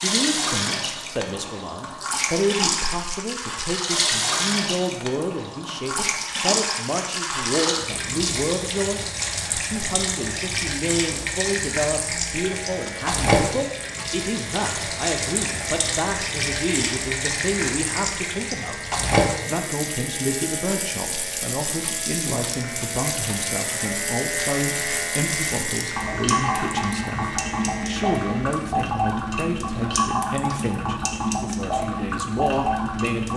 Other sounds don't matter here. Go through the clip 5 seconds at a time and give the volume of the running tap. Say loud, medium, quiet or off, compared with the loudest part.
loud, loud, loud, loud, medium, loud, loud.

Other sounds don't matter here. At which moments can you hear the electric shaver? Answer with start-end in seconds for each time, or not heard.
12.2-28.8.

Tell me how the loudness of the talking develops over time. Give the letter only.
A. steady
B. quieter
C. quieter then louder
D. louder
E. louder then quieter
A.